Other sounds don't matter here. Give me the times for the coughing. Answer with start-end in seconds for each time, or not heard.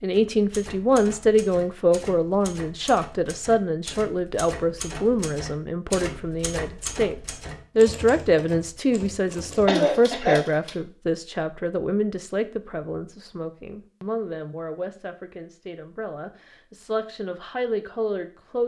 9.7-10.4.